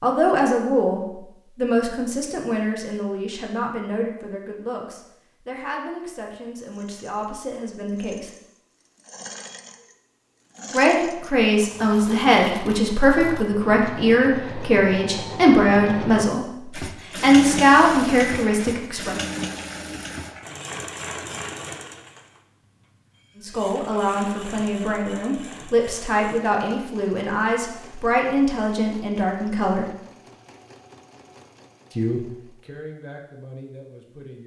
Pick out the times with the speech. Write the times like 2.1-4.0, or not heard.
0.0-8.3, 10.7-19.1, 23.4-29.9, 31.9-34.4.